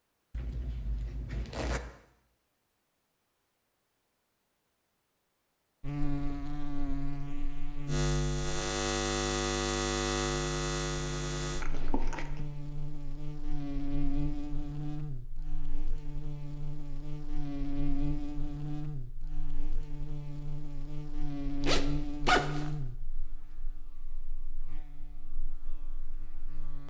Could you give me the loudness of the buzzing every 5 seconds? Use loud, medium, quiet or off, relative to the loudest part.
off, loud, loud, medium, medium, quiet.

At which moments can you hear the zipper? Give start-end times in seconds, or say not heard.
0.3-1.8, 11.6-12.4, 21.6-22.7.